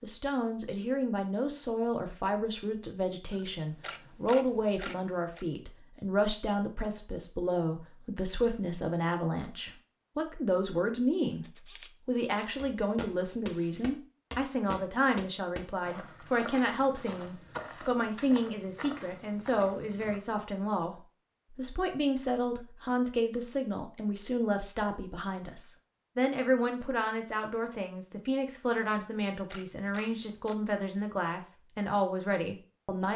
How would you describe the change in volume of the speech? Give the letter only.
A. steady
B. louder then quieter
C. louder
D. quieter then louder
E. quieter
A.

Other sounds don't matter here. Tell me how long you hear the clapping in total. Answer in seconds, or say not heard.
not heard.